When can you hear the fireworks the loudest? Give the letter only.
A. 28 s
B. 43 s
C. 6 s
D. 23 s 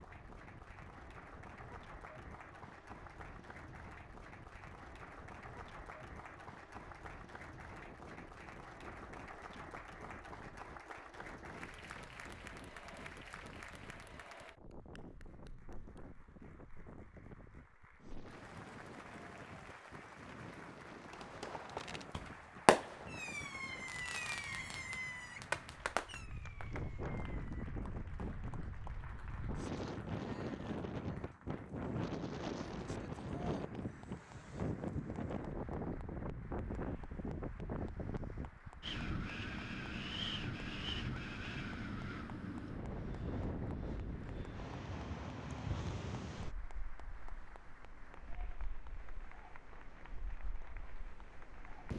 D.